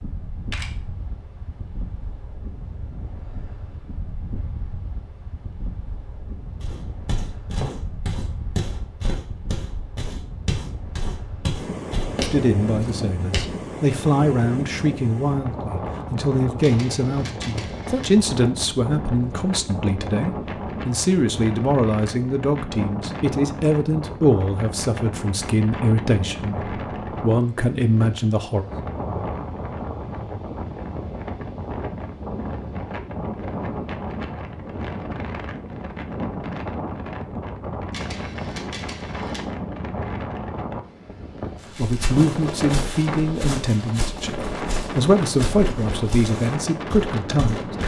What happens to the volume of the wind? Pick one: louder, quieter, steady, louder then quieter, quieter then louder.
louder.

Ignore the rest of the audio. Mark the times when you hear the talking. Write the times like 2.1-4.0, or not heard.
12.2-28.6, 41.8-47.7.